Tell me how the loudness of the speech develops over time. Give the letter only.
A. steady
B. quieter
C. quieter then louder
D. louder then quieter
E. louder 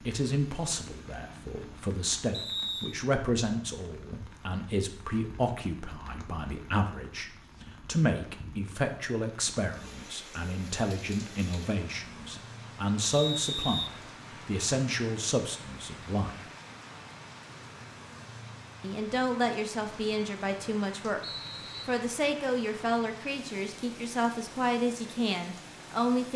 A.